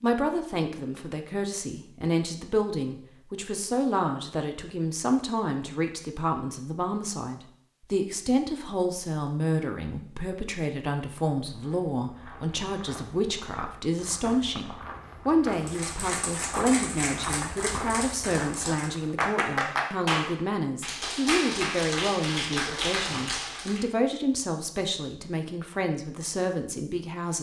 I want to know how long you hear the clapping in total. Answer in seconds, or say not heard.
8 s.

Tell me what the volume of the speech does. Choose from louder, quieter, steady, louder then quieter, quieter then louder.
steady.